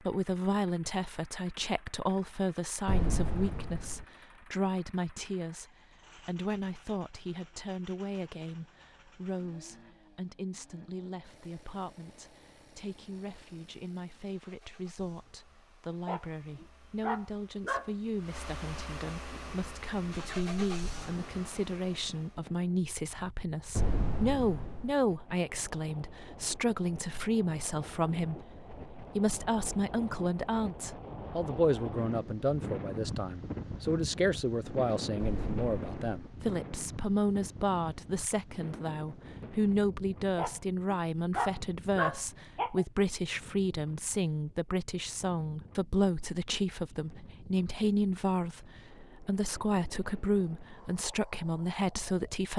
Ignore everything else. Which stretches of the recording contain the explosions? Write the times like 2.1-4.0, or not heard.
2.9-4.0, 23.8-24.9, 35.1-36.4.